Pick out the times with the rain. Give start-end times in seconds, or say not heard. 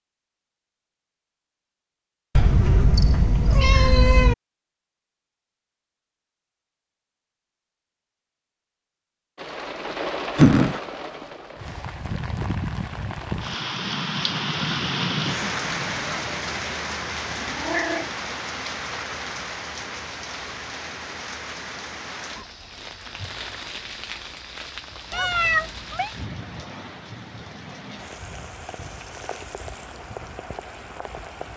9.3-31.5.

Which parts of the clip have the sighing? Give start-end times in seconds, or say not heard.
10.3-10.8.